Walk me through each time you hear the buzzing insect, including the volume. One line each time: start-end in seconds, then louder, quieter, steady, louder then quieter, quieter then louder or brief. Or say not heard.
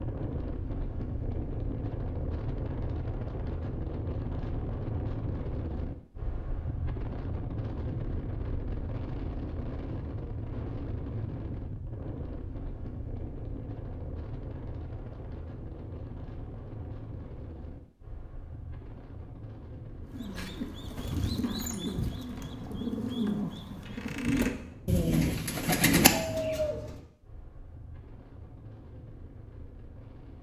not heard.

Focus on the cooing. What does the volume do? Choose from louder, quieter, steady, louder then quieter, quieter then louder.
louder.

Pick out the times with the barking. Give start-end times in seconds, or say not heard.
not heard.